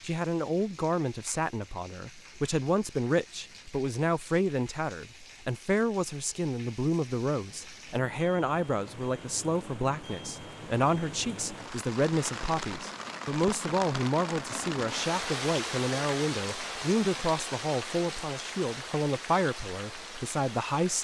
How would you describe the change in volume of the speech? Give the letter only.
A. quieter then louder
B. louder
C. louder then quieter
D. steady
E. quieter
D.